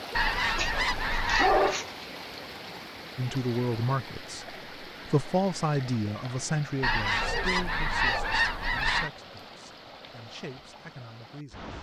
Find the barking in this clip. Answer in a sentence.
The barking can be heard from 0.6 to 2.0 s and from 7.2 to 8.4 s.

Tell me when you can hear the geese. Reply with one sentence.
The geese can be heard from 0.1 to 1.8 s and from 6.8 to 9.1 s.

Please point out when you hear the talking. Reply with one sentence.
You can hear the talking from 3.1 to 11.7 s.